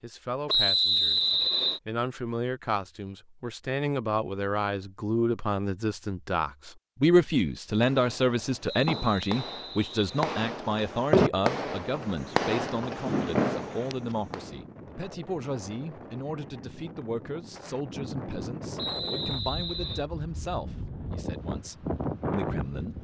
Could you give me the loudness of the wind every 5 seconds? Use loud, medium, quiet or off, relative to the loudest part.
off, off, medium, medium, loud.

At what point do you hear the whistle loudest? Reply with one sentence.
The loudest moment of the whistle is at 1 second.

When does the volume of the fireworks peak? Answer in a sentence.
The loudest moment of the fireworks is at 11 seconds.